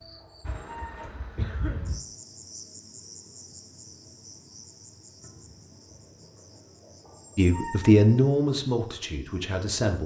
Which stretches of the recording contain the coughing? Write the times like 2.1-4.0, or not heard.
1.4-1.9.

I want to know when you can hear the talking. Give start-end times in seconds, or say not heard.
7.3-10.0.